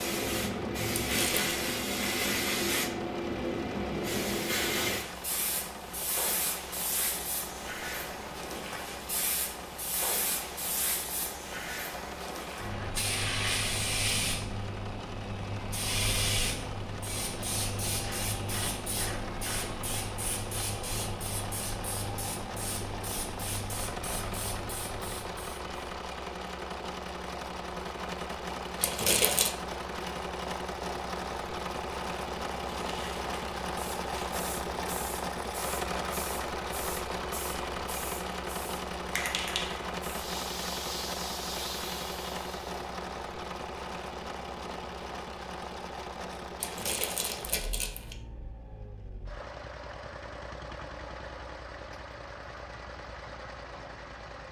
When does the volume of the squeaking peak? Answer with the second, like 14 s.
29 s.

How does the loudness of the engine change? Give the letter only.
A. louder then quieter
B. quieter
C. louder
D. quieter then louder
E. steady
A.